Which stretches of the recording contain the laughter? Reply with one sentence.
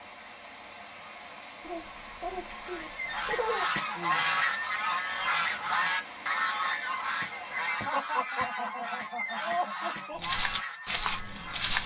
You can hear the laughter from 1.6 to 3.6 s and from 7.8 to 10.2 s.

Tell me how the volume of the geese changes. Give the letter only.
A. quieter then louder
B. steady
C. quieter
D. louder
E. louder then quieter
C.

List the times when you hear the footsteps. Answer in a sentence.
You can hear the footsteps from 10.2 to 11.8 s.